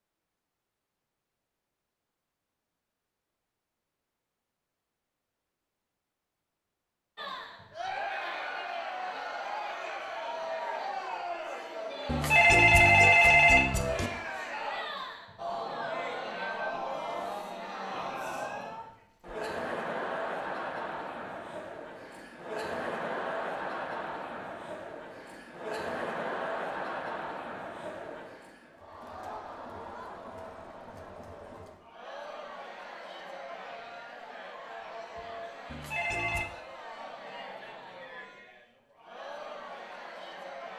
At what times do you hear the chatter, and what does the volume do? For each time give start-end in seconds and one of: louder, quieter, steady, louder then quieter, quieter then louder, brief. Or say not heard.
7.2-40.7 quieter.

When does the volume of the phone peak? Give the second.
13 s.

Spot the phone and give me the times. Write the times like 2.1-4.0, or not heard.
12.1-14.1, 35.6-36.5.